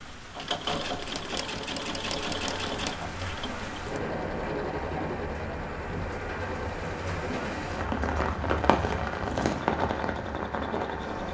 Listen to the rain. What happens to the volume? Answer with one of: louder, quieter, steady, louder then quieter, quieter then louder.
louder.